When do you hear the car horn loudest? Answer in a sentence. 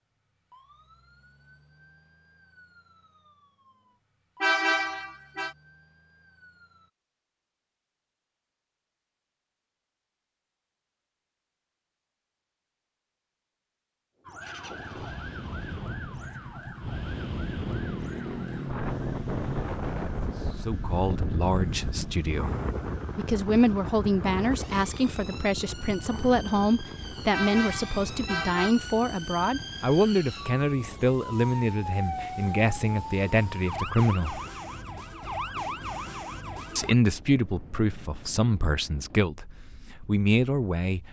The loudest moment of the car horn is at 5 seconds.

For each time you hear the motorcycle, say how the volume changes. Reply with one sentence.
You can hear the motorcycle from 14.4 to 19.6 s, getting louder.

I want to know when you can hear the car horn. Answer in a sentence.
The car horn can be heard from 4.4 to 5.5 s and from 27.3 to 28.8 s.